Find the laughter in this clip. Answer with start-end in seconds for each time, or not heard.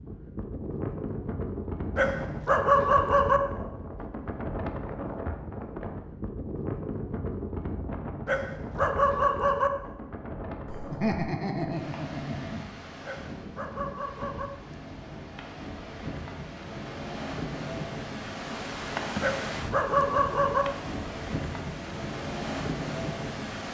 10.7-12.7.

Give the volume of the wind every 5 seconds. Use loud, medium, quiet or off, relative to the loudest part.
loud, loud, medium, loud, loud.